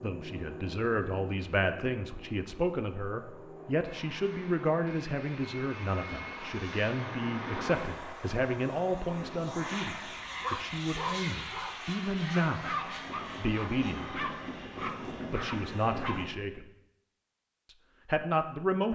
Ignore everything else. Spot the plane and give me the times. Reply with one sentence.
The plane can be heard from 0.0 to 16.3 s.